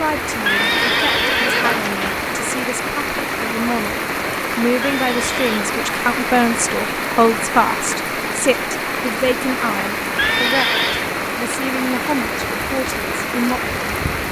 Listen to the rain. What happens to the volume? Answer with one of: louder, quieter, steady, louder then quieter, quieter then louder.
steady.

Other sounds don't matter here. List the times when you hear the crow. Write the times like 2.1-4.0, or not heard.
not heard.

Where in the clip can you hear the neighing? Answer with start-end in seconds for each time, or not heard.
0.4-2.1, 4.8-5.6, 10.2-11.1.